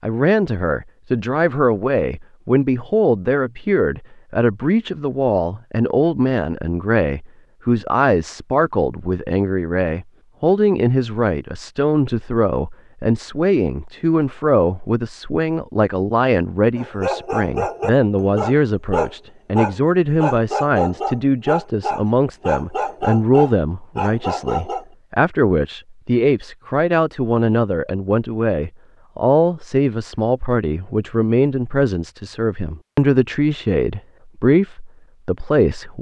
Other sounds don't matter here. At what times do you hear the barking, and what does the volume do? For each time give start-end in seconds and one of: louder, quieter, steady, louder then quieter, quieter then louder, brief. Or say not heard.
16.8-24.9 steady.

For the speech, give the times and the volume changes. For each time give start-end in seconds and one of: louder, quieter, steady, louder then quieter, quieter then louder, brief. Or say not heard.
0.0-35.9 steady.